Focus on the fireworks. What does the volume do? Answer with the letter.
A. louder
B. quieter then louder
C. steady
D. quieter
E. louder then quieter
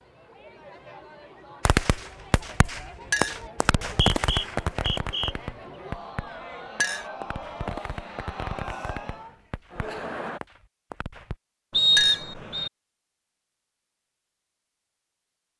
D.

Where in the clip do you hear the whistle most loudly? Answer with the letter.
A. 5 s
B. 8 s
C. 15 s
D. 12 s
D.